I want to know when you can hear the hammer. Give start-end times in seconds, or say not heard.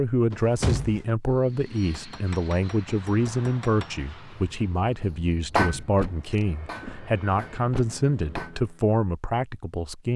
1.8-8.6.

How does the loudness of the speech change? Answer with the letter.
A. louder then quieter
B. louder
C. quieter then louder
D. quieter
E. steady
E.